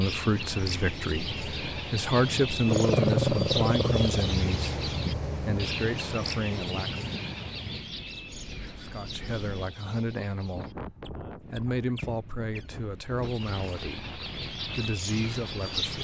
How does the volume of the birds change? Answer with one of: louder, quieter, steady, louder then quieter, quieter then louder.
quieter then louder.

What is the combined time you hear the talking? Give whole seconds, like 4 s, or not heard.
14 s.